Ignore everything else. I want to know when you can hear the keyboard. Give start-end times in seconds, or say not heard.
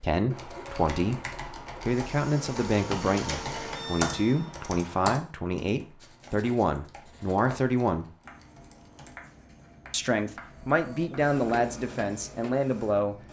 0.3-9.2.